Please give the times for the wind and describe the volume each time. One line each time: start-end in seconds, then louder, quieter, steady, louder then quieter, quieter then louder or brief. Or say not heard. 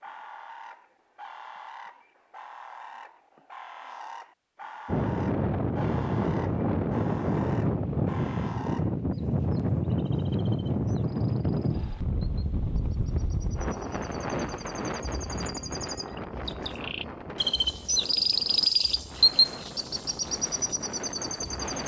4.8-21.8 quieter.